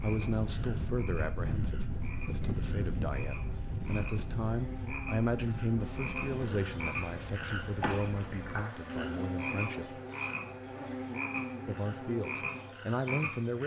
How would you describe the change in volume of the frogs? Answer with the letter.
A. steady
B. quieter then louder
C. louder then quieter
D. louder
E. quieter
D.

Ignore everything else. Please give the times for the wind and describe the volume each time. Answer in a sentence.
The wind can be heard from 0.0 to 8.7 s, getting quieter.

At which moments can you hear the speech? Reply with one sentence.
The speech can be heard from 0.0 to 10.0 s and from 11.7 to 13.6 s.